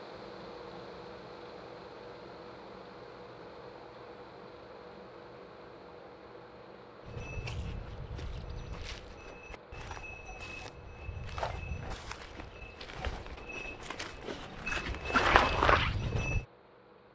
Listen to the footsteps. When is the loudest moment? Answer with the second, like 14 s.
15 s.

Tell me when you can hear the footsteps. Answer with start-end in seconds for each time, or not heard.
7.0-16.4.